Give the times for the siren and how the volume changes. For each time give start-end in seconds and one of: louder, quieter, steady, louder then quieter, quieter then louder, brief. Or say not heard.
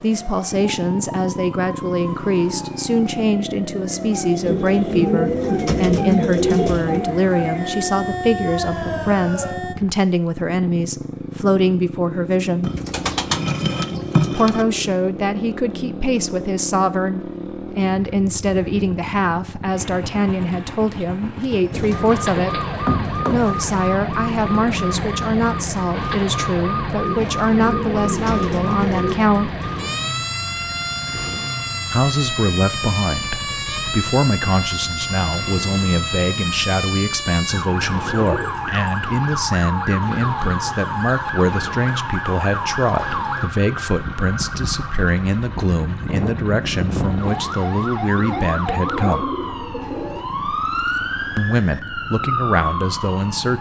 0.0-9.8 louder
21.9-53.5 steady.